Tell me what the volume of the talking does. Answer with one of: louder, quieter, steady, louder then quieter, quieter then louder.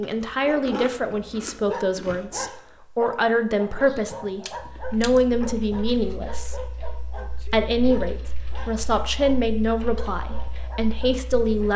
steady.